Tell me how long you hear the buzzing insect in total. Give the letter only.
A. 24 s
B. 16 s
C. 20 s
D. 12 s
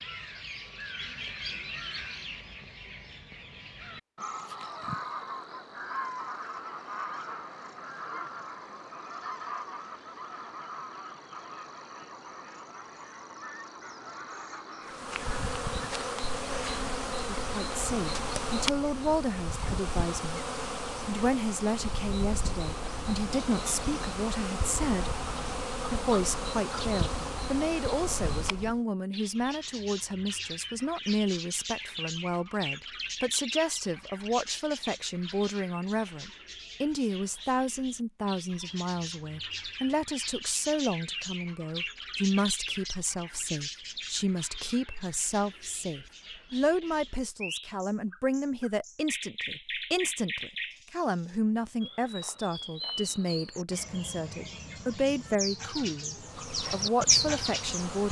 B.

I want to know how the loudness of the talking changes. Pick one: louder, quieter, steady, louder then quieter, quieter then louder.
steady.